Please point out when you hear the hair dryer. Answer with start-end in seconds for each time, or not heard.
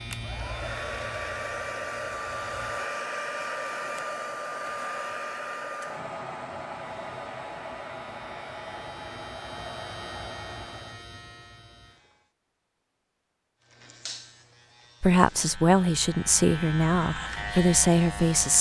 0.0-11.0.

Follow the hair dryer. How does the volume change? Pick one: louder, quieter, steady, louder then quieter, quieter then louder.
quieter.